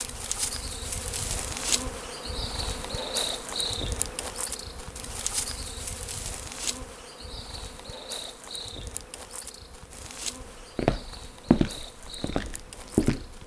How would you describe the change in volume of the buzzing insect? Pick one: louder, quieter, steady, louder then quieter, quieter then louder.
quieter.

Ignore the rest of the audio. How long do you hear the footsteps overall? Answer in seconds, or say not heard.
3 s.